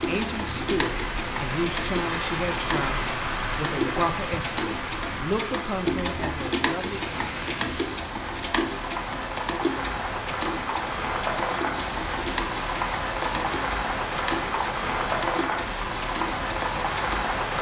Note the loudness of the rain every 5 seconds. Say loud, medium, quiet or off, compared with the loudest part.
loud, medium, loud, loud.